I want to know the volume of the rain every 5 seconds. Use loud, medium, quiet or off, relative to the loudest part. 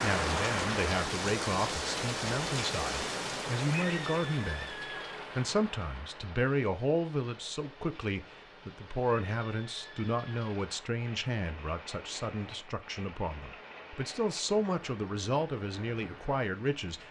loud, quiet, quiet, quiet.